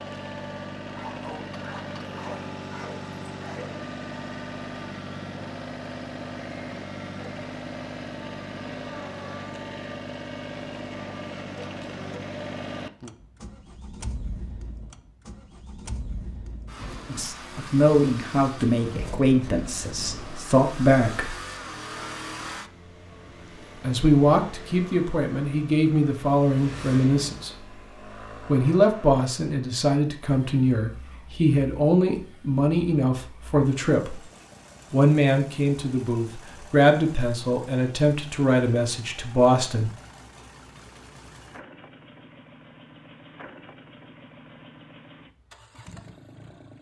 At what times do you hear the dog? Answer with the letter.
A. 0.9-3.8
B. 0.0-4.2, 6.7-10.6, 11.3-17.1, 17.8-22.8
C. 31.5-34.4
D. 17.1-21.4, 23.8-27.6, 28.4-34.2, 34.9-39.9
A.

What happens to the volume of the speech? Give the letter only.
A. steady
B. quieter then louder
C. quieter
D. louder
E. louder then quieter
A.